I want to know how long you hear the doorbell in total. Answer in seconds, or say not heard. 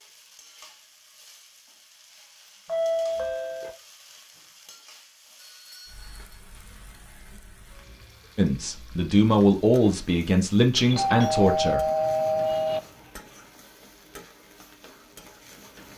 4 s.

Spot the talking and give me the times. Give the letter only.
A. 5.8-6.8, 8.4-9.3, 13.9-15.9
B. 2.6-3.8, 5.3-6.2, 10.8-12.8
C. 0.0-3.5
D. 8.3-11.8
D.